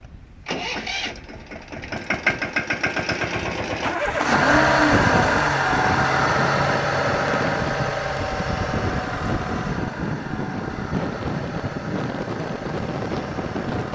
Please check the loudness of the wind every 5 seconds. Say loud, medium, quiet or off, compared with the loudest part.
medium, loud, loud.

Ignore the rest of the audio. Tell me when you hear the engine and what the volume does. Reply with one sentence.
The engine can be heard from 0.0 to 13.9 s, getting louder then quieter.